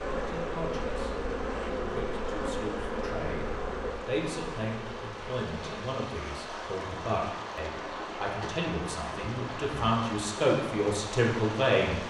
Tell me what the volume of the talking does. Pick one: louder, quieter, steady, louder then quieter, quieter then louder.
louder.